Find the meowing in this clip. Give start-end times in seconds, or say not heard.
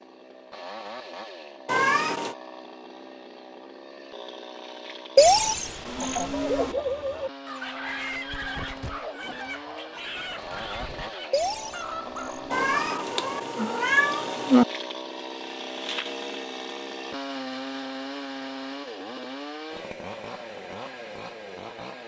1.6-2.4, 12.5-14.7.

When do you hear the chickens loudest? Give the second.
7 s.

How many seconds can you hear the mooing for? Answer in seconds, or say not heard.
3 s.